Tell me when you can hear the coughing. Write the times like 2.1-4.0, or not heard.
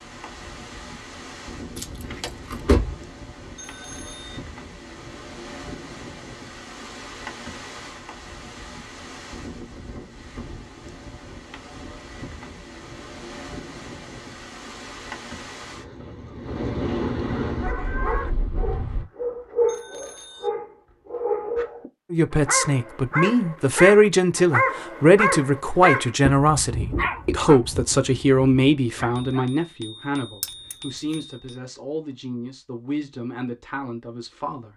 not heard.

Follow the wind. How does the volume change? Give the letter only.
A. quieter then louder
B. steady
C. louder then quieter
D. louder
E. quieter
D.